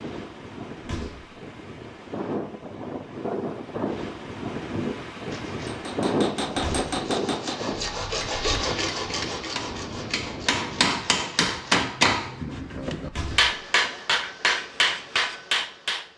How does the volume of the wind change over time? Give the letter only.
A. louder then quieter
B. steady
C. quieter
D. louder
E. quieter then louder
A.